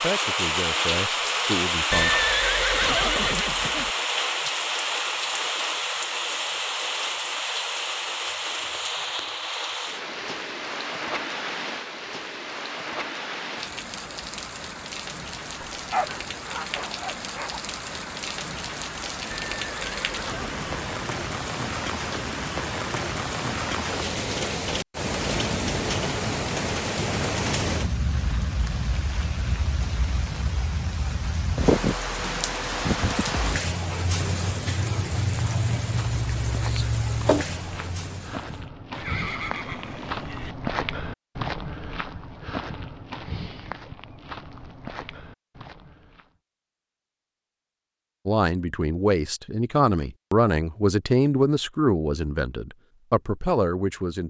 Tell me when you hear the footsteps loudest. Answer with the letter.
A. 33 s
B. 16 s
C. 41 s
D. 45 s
C.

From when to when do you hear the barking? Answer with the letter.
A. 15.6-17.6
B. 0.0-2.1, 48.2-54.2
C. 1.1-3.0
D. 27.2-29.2
A.